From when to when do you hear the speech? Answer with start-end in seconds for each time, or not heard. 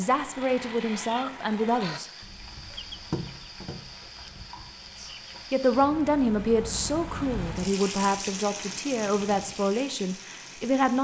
0.0-2.0, 5.0-10.9.